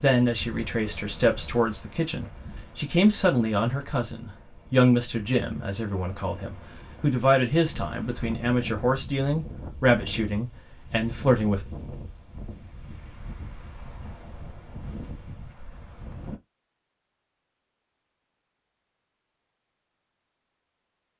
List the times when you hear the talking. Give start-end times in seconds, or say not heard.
0.0-11.6.